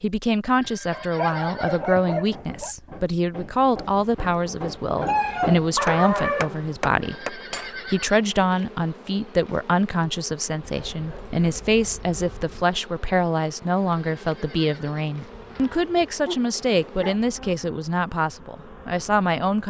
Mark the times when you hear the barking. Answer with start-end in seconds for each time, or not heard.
0.9-2.8, 5.0-6.5, 10.6-12.7, 15.3-17.2.